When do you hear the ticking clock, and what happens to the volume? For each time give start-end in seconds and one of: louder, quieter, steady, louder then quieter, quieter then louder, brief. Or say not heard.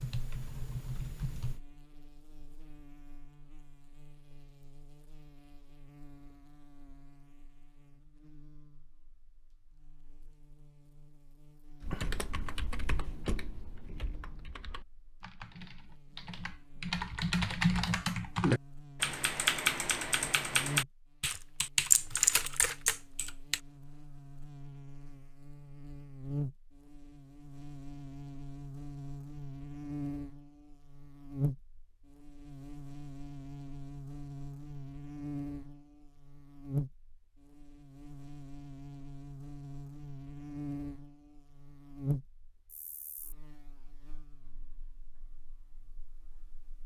not heard.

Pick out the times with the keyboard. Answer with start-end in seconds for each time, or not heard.
0.0-1.6, 11.8-23.6.